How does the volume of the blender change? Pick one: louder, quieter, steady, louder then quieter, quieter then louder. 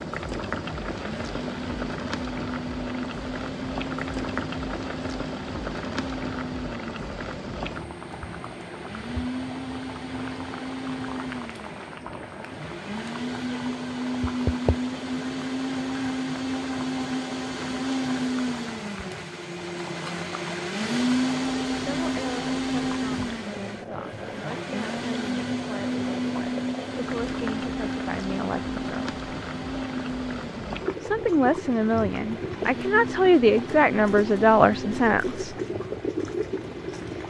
louder then quieter.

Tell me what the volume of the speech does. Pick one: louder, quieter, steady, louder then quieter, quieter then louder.
louder.